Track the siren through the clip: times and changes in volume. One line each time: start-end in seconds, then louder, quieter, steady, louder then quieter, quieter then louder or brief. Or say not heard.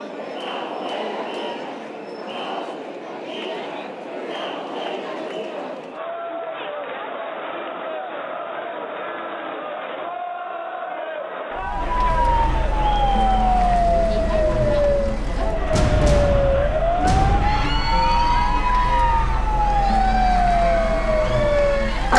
11.5-22.1 steady.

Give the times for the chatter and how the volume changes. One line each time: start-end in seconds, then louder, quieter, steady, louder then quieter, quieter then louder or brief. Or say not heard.
0.0-22.1 steady.